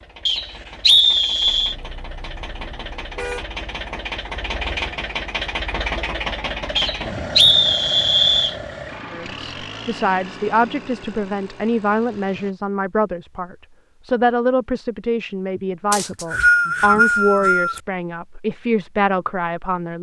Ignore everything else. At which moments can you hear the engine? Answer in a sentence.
You can hear the engine from 0.0 to 12.6 s.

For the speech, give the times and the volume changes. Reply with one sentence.
The speech can be heard from 9.1 to 19.9 s, at a steady volume.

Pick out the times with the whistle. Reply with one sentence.
The whistle can be heard from 0.2 to 1.8 s, from 6.8 to 8.6 s and from 15.9 to 17.8 s.